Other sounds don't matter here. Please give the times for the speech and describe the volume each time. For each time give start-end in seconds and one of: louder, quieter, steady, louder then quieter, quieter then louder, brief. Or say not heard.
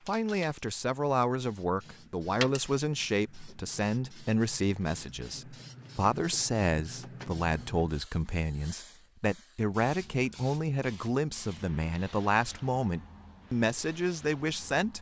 0.1-14.9 steady.